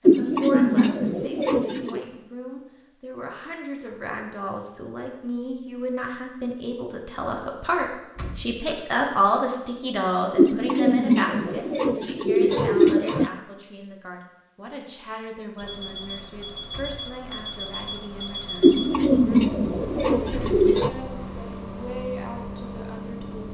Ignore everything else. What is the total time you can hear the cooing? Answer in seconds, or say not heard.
7 s.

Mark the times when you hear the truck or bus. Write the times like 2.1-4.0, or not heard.
15.6-23.4.